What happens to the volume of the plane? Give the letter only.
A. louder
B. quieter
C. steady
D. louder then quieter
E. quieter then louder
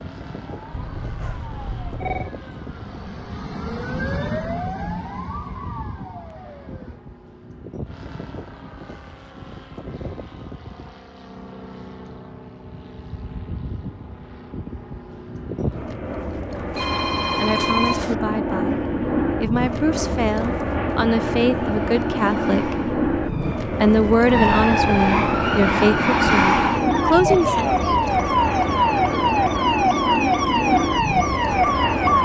A.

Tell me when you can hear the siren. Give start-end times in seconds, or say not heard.
0.2-7.0, 21.6-32.2.